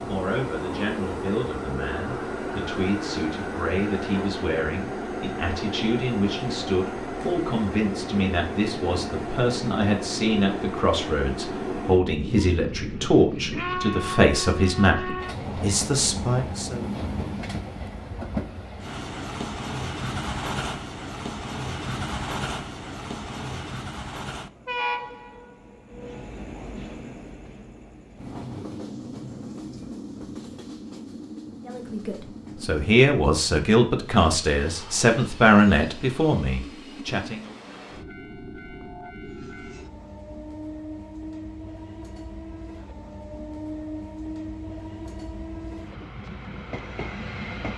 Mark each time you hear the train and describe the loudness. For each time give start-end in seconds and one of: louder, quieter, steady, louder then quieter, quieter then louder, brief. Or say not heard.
0.0-47.7 quieter.